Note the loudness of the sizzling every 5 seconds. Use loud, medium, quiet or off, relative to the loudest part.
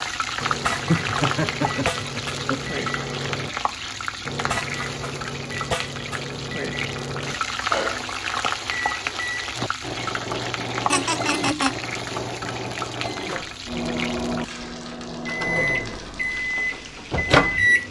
loud, loud, loud, medium.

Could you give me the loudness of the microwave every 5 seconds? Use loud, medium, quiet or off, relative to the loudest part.
medium, medium, medium, loud.